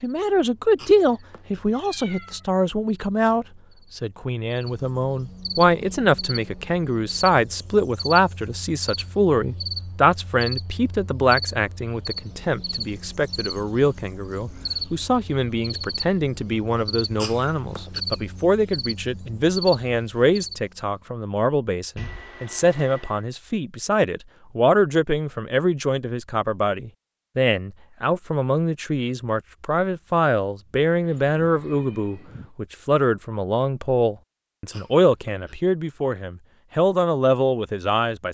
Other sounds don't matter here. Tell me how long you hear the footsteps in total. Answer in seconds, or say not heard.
not heard.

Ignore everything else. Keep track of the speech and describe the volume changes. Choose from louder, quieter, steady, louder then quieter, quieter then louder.
steady.